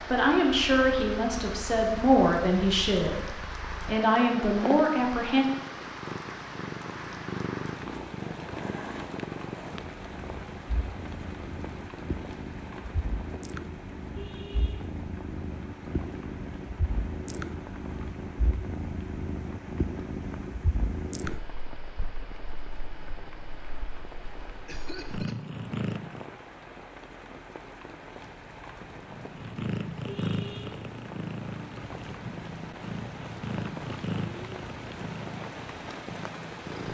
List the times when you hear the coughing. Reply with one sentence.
The coughing can be heard from 24.6 to 25.4 s.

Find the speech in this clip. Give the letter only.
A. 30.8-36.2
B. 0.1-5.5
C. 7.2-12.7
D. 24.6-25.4
B.